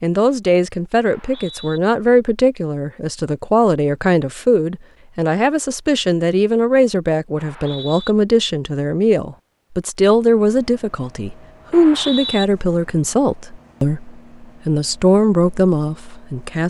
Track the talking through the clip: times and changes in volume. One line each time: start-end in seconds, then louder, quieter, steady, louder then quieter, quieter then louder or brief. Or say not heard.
0.0-16.6 steady.